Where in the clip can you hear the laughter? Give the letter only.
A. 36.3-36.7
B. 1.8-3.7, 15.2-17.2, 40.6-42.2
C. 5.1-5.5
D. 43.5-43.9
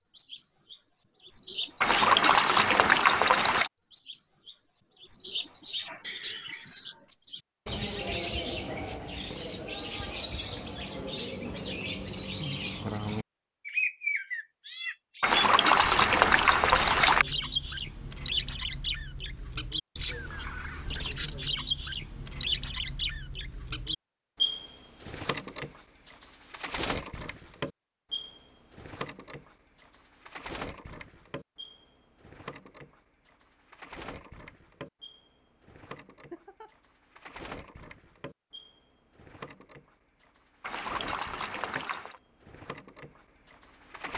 A.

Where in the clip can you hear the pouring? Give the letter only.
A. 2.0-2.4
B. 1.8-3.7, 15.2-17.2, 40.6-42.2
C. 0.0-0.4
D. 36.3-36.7
B.